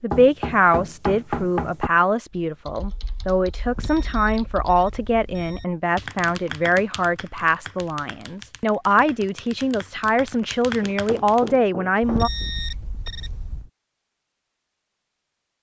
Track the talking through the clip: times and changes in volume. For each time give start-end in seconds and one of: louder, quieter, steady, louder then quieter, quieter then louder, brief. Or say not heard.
0.0-12.3 steady.